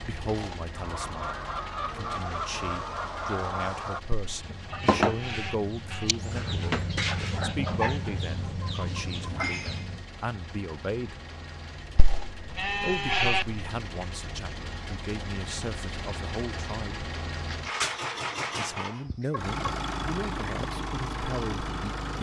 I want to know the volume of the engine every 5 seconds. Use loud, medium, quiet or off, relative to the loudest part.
medium, quiet, medium, loud, loud.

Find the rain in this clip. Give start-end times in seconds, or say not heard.
not heard.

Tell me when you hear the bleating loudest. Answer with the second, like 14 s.
13 s.